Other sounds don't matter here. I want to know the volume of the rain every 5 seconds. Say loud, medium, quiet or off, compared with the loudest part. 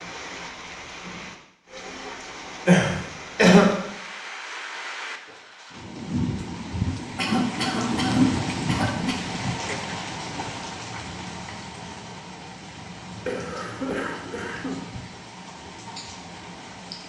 medium, loud, medium, quiet.